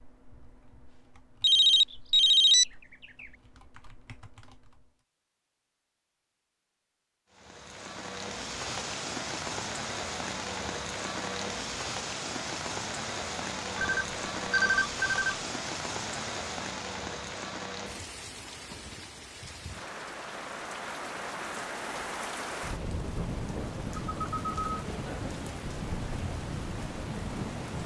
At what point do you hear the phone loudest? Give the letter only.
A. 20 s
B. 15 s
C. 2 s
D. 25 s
C.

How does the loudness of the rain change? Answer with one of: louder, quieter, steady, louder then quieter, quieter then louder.
steady.